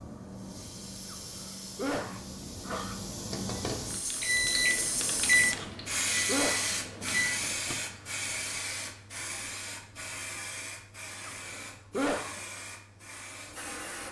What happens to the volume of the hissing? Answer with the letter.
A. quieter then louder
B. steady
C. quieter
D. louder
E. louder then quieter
E.